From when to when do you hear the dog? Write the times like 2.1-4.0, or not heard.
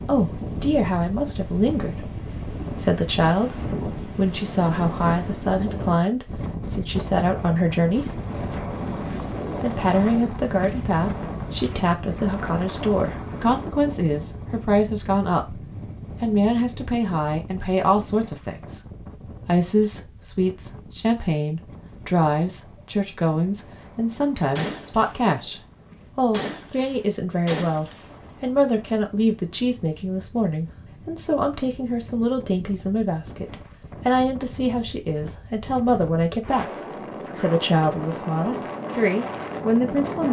not heard.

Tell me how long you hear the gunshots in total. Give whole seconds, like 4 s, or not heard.
3 s.